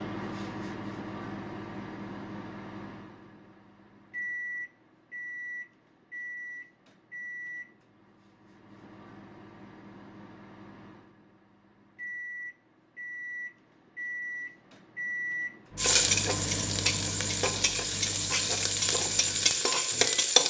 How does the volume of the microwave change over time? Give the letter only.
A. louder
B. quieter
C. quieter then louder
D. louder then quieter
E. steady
C.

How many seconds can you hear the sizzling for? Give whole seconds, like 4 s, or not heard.
5 s.